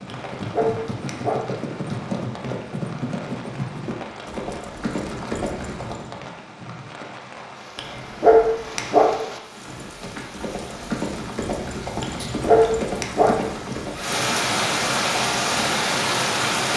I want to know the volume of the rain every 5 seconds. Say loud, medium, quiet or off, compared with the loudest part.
quiet, quiet, medium, loud.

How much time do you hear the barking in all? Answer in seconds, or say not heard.
4 s.